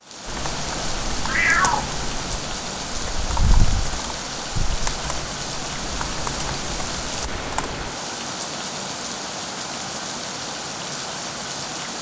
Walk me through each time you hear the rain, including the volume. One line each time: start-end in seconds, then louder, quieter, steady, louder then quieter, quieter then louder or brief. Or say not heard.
0.0-11.9 steady.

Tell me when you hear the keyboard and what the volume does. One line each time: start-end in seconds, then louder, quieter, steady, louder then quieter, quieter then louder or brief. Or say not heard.
0.2-7.9 steady.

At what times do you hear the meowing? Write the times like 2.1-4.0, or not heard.
1.2-1.9.